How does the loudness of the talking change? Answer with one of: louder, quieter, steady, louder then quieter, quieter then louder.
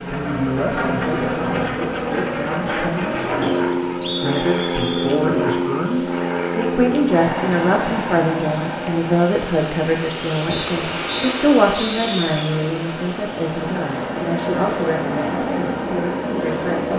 louder then quieter.